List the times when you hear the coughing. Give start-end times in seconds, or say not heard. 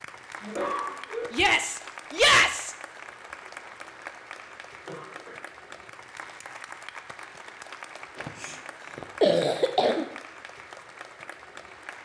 0.4-1.2, 4.8-5.3, 8.2-10.1.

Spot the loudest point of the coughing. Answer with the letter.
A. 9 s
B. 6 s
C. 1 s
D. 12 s
A.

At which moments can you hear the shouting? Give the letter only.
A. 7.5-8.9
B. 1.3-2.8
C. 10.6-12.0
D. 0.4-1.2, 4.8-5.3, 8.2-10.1
B.